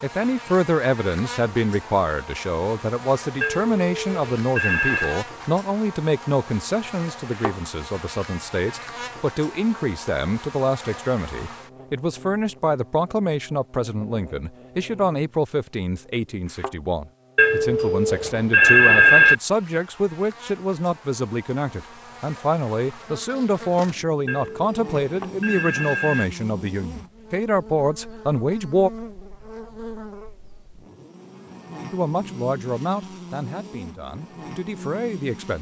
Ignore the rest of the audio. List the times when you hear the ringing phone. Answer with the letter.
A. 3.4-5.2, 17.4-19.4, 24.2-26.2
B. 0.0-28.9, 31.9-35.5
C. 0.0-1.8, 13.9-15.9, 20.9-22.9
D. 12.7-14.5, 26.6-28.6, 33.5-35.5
A.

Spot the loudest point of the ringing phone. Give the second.
19 s.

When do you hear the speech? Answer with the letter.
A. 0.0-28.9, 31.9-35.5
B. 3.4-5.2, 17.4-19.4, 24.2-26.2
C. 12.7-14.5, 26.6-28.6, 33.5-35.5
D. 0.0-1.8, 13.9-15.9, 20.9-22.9
A.